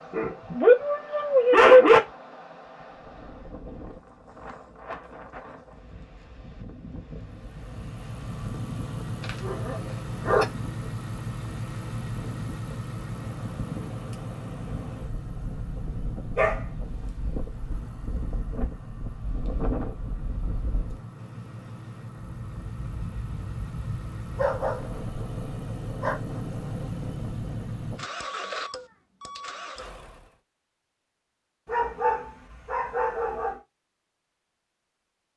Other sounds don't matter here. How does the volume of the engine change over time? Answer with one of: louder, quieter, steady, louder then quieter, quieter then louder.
quieter then louder.